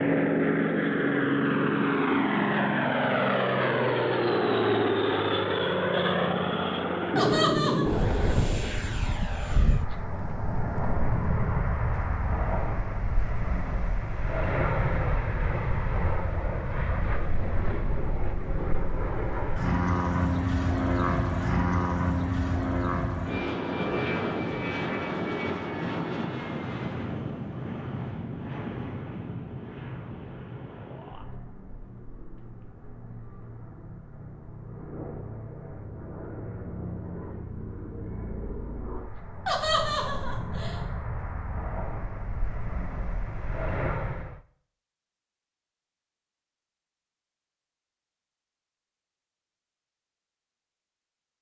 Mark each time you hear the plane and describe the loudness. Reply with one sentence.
You can hear the plane from 0.0 to 44.4 s, getting quieter.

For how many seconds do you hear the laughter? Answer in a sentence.
The laughter can be heard for 2 seconds in total.